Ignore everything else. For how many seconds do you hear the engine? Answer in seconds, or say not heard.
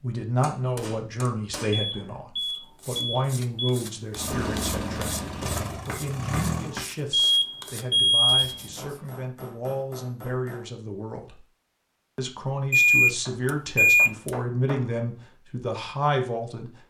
3 s.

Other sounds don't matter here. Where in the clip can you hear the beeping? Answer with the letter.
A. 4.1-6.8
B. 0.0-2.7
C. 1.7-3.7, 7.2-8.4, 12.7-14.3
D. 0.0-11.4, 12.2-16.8
C.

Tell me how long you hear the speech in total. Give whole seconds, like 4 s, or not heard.
16 s.